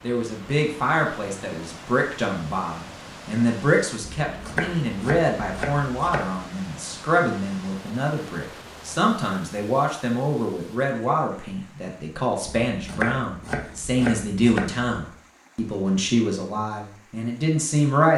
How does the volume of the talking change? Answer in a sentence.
The loudness of the talking stays about the same.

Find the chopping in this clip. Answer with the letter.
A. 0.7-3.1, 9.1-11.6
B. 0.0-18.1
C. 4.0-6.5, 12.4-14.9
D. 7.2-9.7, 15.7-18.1
C.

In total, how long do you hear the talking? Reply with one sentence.
The talking can be heard for 18 seconds in total.